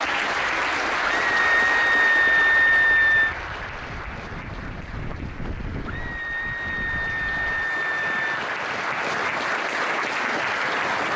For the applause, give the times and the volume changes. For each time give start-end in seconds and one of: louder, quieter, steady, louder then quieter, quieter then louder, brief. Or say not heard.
0.0-11.1 quieter then louder.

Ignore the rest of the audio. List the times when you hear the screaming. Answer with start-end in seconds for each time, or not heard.
1.3-3.4, 5.8-8.4.